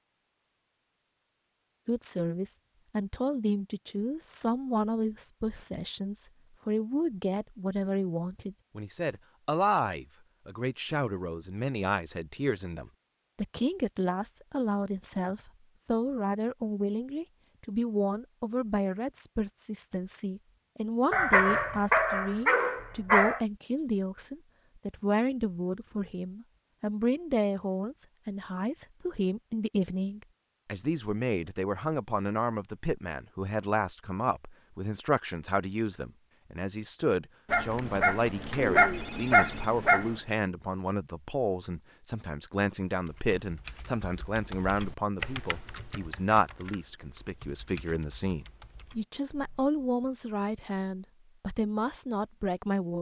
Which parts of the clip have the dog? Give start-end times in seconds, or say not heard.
21.1-23.4, 37.5-40.2.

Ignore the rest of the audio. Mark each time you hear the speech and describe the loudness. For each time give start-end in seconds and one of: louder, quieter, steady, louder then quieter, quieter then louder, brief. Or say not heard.
1.9-52.9 steady.